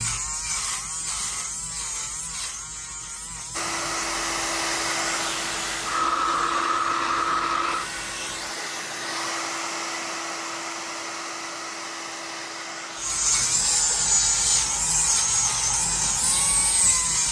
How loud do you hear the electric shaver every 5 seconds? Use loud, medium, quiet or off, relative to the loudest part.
medium, quiet, loud, loud.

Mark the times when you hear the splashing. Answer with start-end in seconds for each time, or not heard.
not heard.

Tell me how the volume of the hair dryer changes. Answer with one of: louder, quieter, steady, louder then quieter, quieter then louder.
quieter.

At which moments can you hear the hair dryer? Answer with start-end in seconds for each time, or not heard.
3.5-17.0.